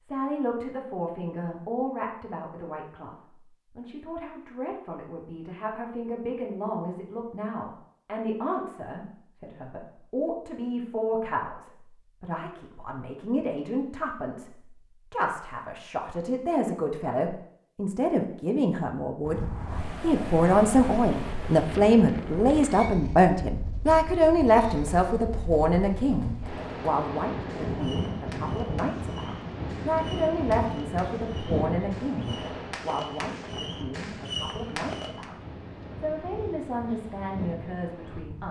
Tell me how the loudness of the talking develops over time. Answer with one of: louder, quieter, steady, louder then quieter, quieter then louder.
louder then quieter.